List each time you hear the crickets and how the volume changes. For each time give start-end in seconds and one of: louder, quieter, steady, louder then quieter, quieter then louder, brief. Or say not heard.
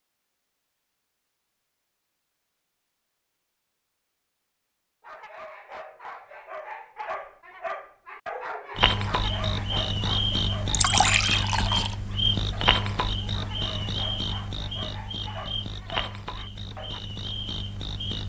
8.8-18.2 quieter.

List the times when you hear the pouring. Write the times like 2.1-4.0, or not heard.
10.7-11.9.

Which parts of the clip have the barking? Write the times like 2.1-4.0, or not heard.
5.0-17.0.